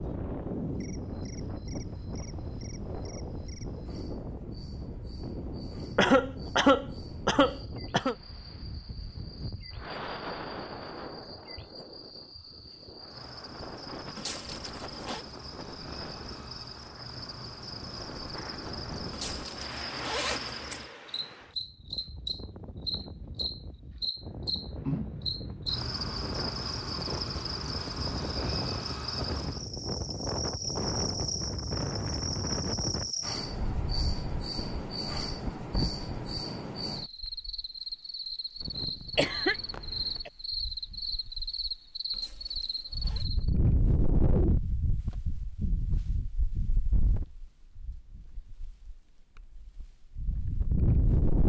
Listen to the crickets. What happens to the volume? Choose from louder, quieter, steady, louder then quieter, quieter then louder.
louder.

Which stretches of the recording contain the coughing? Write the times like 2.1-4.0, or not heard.
6.0-8.2, 39.1-40.3.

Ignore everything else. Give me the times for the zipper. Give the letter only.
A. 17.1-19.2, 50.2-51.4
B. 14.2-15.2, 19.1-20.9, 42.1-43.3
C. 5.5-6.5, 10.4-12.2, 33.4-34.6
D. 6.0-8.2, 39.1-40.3
B.